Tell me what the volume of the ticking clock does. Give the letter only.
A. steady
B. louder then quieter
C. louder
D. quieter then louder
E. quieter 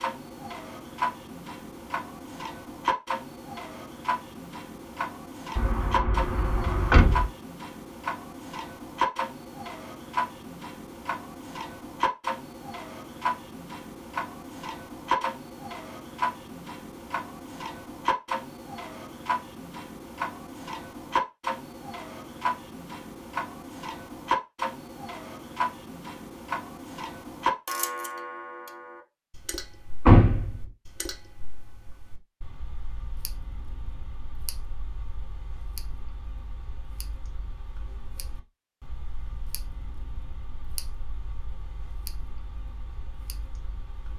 E.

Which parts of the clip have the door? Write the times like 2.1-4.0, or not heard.
5.5-7.3, 30.1-30.6.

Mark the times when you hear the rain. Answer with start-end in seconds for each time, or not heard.
not heard.